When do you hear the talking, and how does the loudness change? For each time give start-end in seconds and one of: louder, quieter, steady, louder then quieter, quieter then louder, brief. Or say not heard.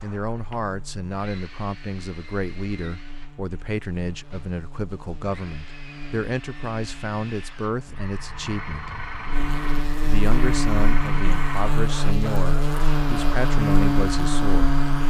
0.0-8.9 steady
10.1-14.8 steady.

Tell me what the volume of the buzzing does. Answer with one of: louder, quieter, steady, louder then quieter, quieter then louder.
louder.